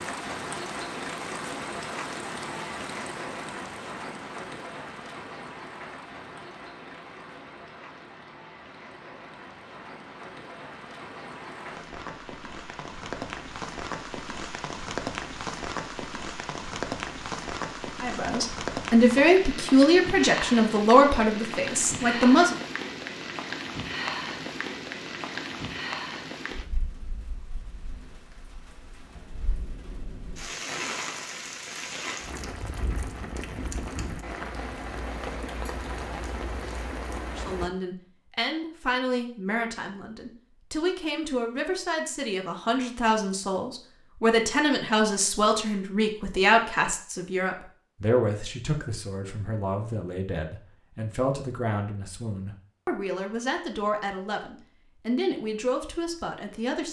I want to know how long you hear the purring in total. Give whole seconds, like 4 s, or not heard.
not heard.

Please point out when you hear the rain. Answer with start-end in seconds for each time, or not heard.
0.0-37.7.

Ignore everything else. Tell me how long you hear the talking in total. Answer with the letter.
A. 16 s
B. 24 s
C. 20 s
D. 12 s
B.